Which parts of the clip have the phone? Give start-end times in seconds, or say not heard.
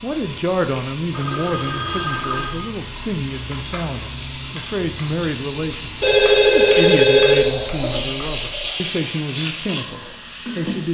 1.1-2.6, 6.0-8.8.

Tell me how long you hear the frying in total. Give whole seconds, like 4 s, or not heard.
11 s.